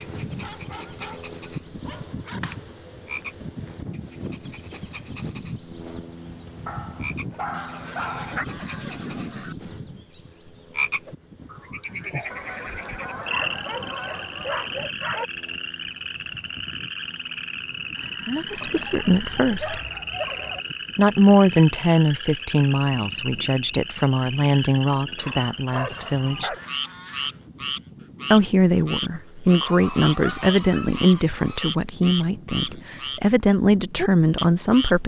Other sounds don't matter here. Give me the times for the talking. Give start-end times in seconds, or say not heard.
18.2-19.8, 20.9-26.5, 28.3-35.0.